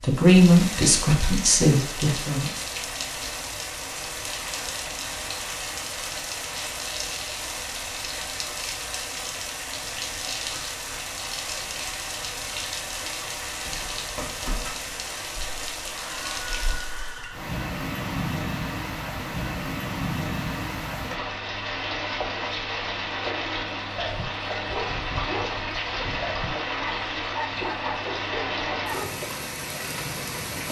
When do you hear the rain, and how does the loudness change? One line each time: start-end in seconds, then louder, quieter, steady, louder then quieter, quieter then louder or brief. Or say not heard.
0.0-30.6 steady.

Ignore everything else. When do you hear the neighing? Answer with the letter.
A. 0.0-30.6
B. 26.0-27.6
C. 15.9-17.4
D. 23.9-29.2
C.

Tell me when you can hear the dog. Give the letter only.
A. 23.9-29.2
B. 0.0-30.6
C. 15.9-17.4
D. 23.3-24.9
A.